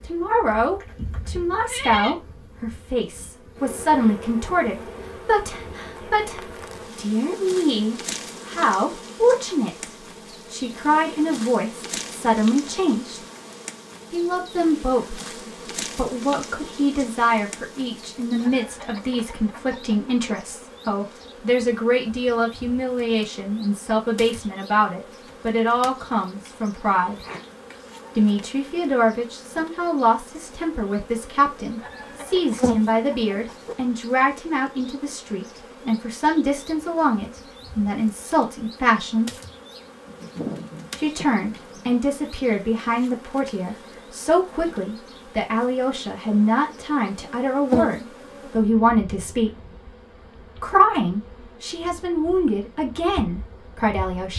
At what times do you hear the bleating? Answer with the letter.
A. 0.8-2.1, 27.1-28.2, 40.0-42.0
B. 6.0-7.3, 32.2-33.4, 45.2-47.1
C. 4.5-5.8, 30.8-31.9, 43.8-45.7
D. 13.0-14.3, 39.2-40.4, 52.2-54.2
A.